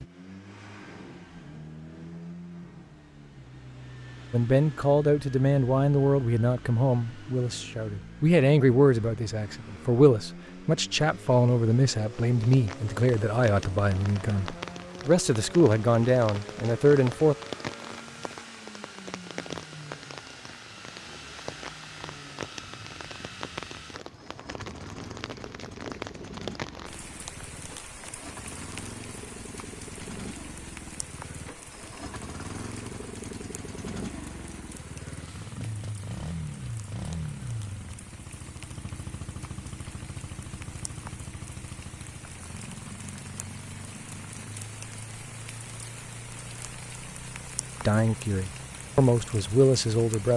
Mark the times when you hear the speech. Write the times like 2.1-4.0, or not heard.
4.3-17.4, 47.9-50.3.